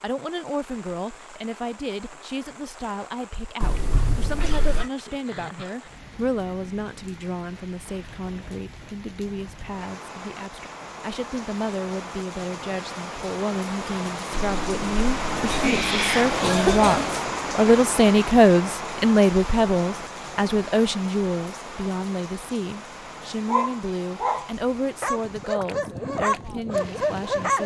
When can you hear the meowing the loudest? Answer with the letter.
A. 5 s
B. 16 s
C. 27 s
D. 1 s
B.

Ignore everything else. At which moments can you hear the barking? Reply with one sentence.
The barking can be heard from 23.4 to 27.6 s.